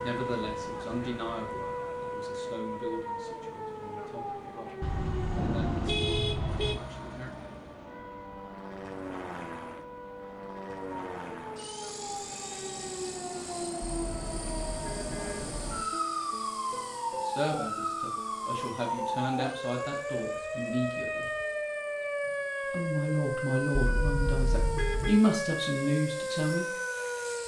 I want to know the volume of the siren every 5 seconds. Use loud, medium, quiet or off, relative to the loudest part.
loud, medium, medium, loud, loud, loud.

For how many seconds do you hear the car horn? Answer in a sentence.
The car horn can be heard for 5 seconds in total.